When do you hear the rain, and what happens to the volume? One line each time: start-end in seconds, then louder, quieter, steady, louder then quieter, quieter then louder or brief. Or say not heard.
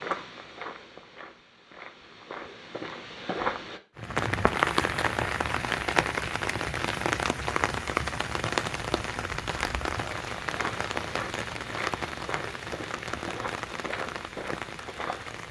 4.0-15.4 quieter.